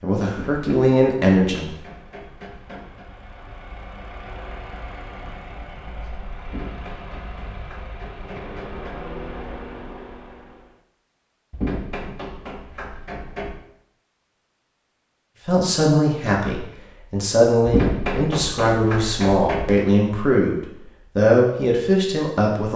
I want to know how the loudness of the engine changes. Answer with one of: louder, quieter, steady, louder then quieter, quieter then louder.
louder.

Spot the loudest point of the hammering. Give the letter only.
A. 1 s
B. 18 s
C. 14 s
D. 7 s
B.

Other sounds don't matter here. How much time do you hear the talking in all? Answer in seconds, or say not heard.
9 s.